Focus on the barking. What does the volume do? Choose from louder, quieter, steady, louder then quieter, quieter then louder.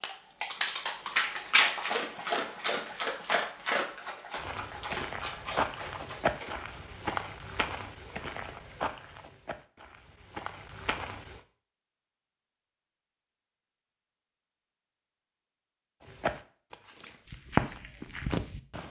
quieter.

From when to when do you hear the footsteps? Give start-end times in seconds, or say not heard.
4.3-11.4, 16.0-18.8.